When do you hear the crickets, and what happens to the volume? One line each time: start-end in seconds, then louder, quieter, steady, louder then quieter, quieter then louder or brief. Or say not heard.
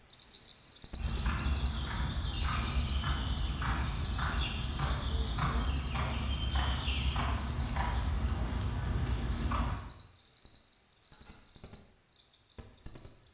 0.1-13.2 quieter.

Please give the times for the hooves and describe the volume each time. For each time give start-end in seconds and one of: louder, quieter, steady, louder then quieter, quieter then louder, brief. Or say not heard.
0.9-9.8 steady.